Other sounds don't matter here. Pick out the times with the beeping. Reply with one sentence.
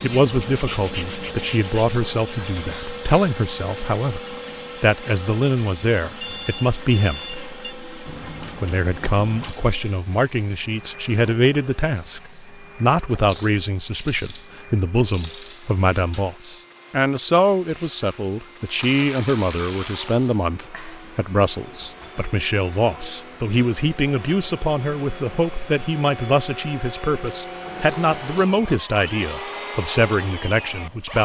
The beeping can be heard from 6.2 to 7.8 s.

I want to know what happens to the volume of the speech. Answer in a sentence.
The loudness of the speech stays about the same.